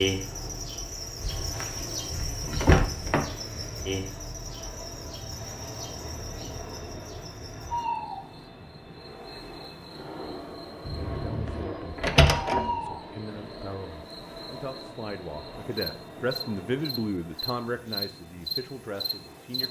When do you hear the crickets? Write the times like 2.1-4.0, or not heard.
0.0-19.6.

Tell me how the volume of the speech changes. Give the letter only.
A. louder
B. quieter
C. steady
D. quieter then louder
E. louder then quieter
E.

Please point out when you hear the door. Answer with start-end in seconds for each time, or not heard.
1.2-3.2, 10.8-12.7.